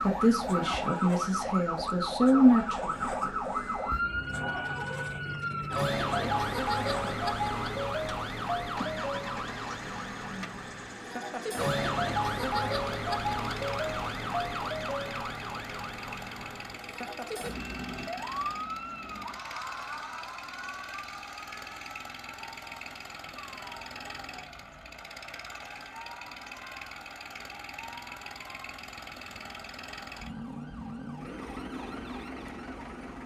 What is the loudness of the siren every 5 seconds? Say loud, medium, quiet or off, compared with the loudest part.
loud, loud, loud, medium, quiet, quiet, quiet.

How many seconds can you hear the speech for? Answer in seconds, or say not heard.
3 s.